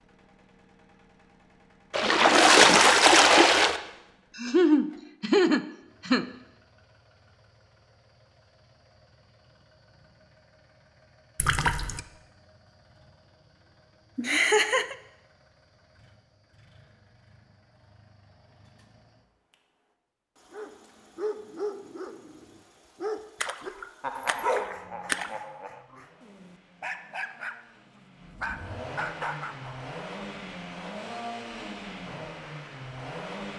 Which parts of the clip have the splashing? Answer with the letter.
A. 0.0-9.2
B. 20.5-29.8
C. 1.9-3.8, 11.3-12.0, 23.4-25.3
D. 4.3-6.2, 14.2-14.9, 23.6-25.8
C.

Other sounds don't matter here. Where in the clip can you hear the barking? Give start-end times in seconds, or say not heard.
20.5-29.8.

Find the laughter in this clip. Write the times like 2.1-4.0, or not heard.
4.3-6.2, 14.2-14.9, 23.6-25.8.